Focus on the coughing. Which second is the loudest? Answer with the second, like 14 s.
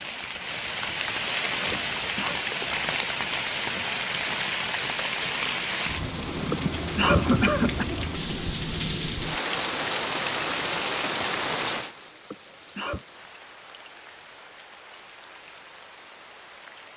7 s.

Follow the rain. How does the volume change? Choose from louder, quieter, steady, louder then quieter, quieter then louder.
quieter.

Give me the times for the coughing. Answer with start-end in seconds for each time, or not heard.
1.7-2.4, 6.5-7.8, 12.3-13.1.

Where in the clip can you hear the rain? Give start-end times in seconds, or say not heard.
0.0-16.9.